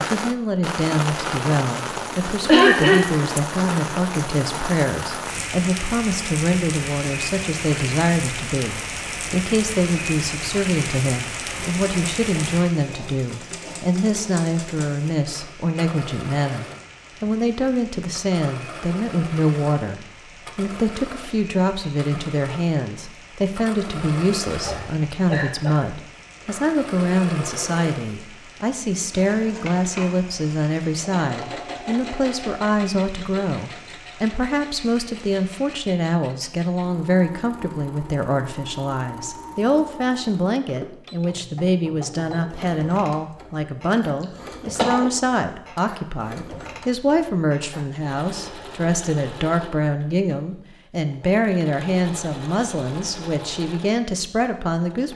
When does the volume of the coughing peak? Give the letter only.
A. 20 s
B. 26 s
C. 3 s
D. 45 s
C.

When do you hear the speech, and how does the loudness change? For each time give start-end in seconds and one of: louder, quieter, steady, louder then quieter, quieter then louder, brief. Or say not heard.
0.1-55.1 steady.